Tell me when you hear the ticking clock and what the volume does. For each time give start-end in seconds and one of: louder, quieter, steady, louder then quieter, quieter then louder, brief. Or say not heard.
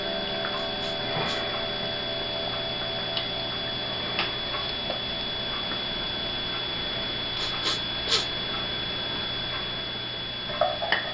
0.0-11.0 steady.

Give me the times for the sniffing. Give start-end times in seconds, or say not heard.
0.7-1.4, 7.3-8.3.